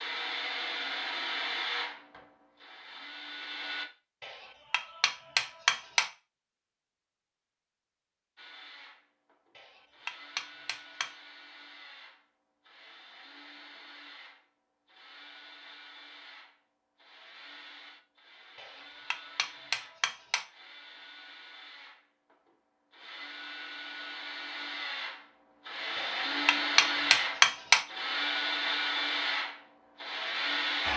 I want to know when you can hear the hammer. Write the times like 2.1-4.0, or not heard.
4.2-6.1, 9.6-11.1, 18.6-20.4, 25.9-27.9.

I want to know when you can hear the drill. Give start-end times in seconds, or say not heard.
0.0-3.9, 8.3-30.9.